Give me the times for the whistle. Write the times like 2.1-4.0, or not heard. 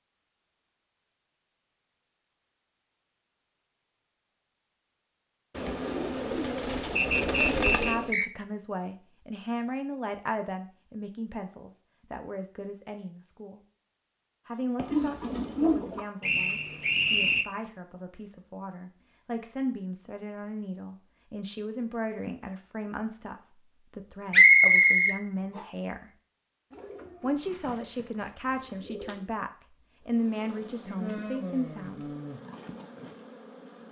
7.0-8.3, 16.2-17.4, 24.3-25.6.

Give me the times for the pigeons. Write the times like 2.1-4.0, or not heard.
5.5-8.1, 14.8-16.0, 26.7-29.2.